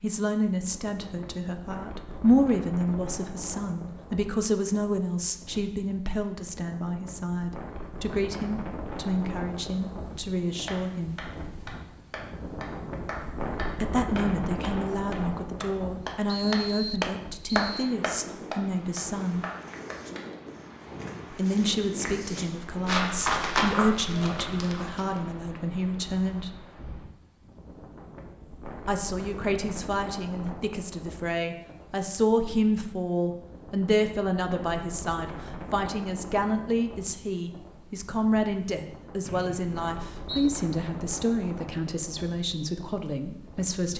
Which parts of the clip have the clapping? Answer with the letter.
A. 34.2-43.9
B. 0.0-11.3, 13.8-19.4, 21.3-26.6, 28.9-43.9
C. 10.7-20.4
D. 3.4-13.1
C.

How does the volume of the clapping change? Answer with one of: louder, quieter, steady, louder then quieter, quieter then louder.
louder then quieter.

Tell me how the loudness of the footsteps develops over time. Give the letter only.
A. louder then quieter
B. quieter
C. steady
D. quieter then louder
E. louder
A.